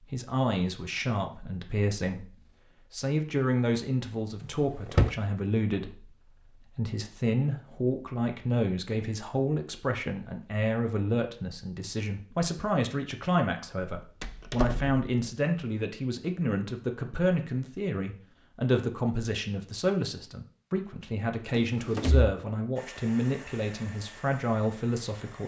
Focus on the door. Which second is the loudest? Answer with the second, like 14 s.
5 s.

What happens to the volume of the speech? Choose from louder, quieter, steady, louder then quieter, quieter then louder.
steady.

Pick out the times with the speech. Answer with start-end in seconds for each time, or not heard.
0.0-25.4.